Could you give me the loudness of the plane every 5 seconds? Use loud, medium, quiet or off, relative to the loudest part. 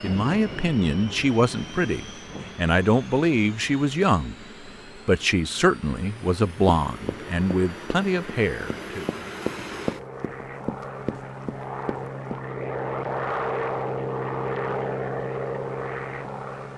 medium, medium, loud, loud.